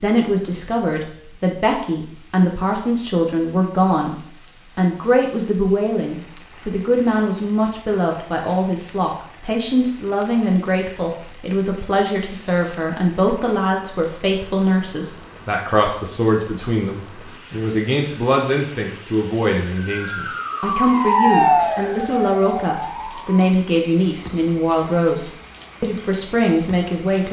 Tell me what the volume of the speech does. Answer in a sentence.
The volume of the speech stays about the same.